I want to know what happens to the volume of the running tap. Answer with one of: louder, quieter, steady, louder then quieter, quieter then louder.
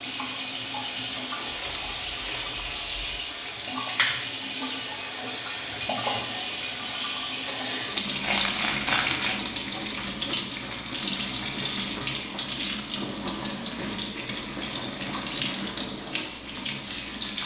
steady.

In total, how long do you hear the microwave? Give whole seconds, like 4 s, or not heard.
not heard.